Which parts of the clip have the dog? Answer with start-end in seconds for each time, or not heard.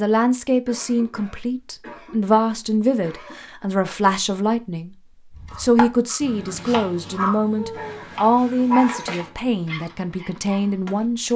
5.5-10.8.